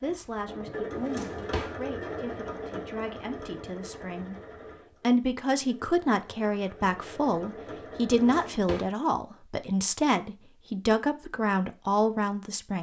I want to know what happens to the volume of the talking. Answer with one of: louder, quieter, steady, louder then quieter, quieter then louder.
louder.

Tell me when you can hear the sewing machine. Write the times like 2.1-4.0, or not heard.
0.0-8.5.